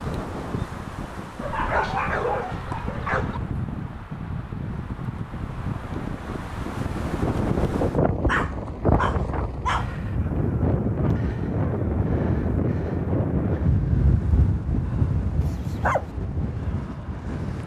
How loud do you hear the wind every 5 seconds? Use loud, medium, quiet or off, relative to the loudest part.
medium, loud, loud, medium.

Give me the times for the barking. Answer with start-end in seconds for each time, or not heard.
1.4-3.4, 8.2-9.9, 15.4-16.1.